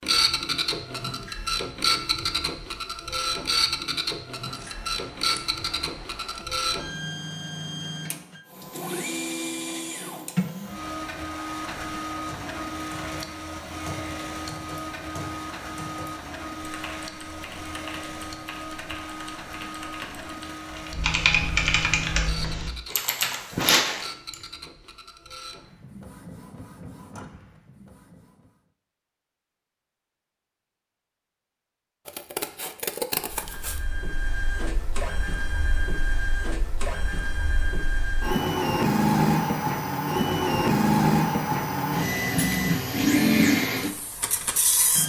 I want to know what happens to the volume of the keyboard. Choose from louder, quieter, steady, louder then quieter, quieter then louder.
louder.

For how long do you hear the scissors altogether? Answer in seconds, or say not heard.
4 s.